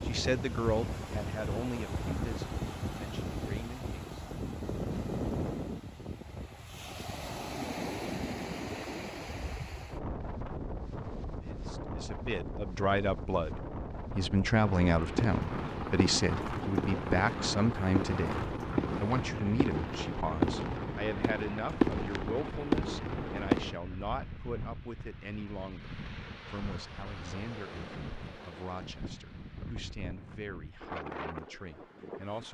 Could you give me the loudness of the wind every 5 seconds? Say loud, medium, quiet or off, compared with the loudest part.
loud, loud, loud, loud, medium, medium, medium.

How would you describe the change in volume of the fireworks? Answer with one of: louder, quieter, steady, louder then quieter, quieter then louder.
louder.